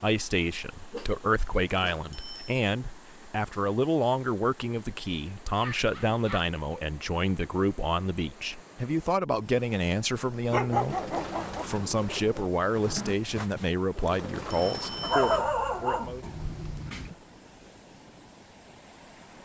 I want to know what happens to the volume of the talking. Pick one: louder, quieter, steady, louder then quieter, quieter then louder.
steady.